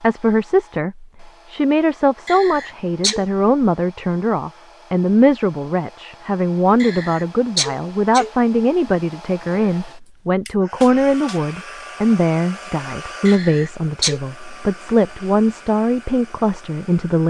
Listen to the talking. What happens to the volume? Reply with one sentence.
The loudness of the talking stays about the same.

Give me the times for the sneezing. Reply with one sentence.
You can hear the sneezing from 2.2 to 3.2 s, from 6.8 to 8.3 s and from 13.2 to 14.2 s.